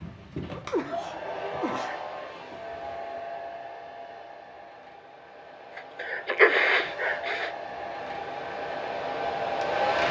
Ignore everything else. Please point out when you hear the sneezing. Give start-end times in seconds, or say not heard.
0.5-2.2, 5.8-7.5.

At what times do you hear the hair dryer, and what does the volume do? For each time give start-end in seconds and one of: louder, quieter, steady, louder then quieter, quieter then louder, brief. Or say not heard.
0.0-10.0 quieter then louder.